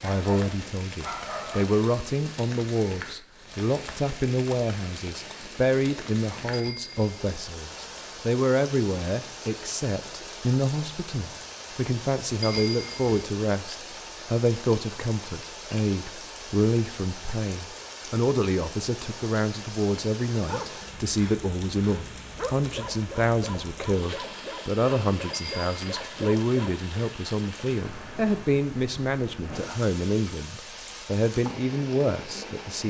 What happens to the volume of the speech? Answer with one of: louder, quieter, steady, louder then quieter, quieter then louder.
steady.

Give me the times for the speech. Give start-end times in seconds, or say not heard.
0.0-32.8.